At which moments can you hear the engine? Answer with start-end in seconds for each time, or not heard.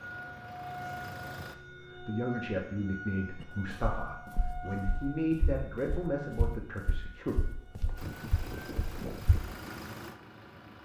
0.0-1.6, 8.0-10.8.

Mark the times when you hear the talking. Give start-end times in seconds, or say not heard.
1.8-7.3.